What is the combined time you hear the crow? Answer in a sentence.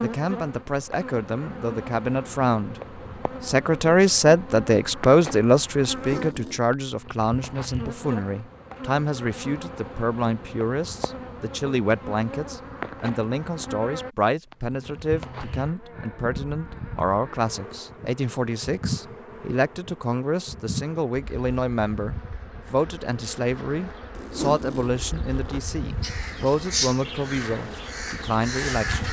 You can hear the crow for 3 seconds altogether.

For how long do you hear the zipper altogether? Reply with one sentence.
You can hear the zipper for 2 seconds altogether.